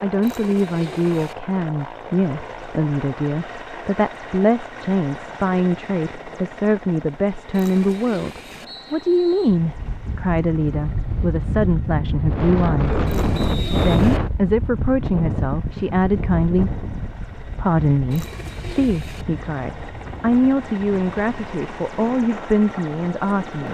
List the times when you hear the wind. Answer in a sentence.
The wind can be heard from 9.6 to 23.7 s.